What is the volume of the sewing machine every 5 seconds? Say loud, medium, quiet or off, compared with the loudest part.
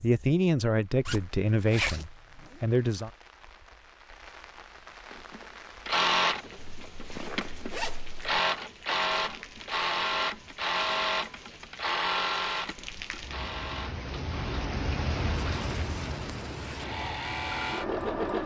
off, loud, loud, loud.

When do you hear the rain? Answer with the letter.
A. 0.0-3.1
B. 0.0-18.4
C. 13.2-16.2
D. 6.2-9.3
B.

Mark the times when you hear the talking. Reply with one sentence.
You can hear the talking from 0.0 to 3.1 s.